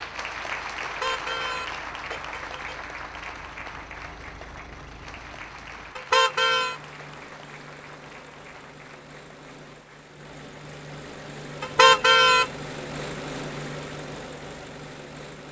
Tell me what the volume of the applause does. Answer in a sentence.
The loudness of the applause goes down.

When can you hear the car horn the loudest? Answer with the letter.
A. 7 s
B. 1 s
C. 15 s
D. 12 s
D.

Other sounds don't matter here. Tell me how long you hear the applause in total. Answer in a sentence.
The applause can be heard for 10 seconds in total.